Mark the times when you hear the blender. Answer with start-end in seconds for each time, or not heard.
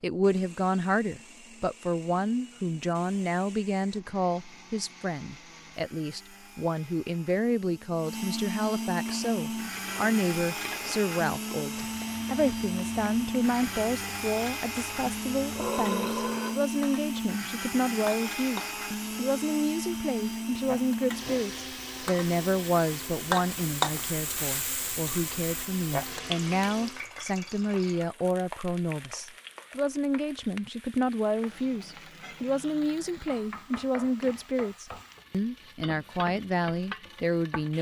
0.1-27.1.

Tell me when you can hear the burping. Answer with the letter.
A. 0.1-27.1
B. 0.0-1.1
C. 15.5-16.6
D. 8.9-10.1
C.